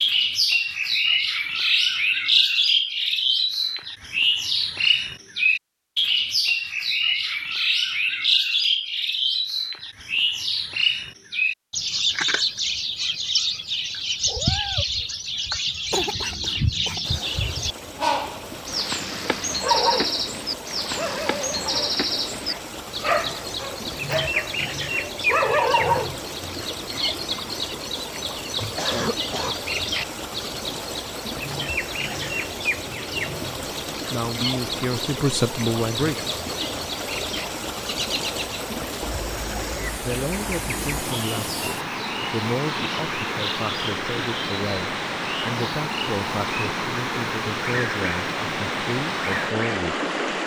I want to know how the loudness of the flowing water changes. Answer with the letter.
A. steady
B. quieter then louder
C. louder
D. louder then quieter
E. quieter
C.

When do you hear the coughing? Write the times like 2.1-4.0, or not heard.
15.9-17.1, 28.8-29.6.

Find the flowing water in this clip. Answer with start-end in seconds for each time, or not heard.
17.0-50.4.